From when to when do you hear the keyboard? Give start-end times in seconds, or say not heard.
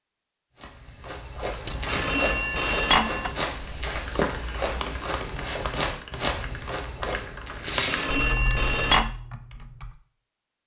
3.9-9.9.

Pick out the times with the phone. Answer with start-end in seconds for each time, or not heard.
1.6-3.4, 7.7-9.1.